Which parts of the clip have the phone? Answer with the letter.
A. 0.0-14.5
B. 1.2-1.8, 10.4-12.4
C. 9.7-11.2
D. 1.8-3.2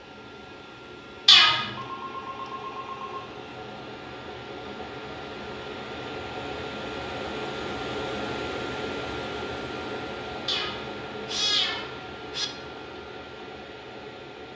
D.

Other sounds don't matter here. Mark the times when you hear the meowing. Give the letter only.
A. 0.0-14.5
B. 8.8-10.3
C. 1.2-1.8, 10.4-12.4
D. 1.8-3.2
C.